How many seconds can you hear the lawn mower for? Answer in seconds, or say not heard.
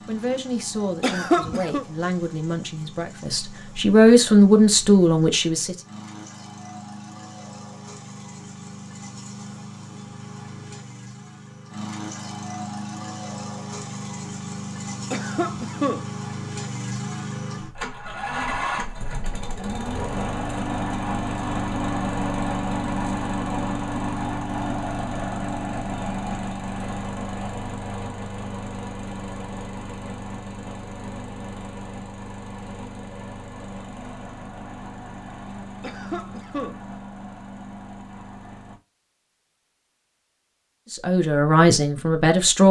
39 s.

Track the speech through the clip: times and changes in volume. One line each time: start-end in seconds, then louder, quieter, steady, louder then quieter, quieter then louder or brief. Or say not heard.
0.1-5.8 louder
40.9-42.6 brief.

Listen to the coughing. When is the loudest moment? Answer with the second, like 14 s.
1 s.